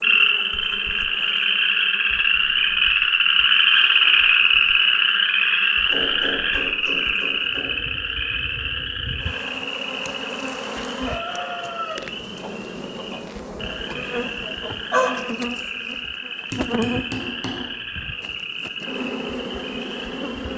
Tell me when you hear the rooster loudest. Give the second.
15 s.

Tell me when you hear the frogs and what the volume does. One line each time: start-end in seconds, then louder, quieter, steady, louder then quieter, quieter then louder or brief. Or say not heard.
0.0-20.5 quieter.